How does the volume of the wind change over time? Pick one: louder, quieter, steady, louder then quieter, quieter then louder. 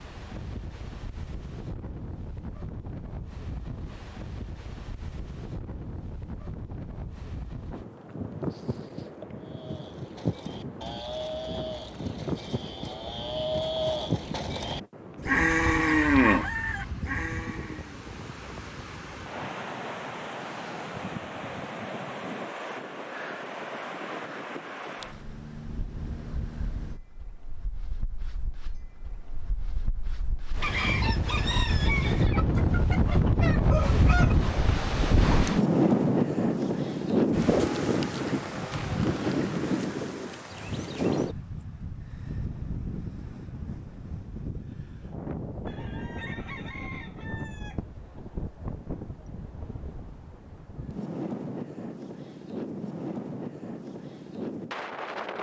louder then quieter.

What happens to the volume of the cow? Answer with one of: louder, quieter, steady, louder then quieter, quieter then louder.
louder.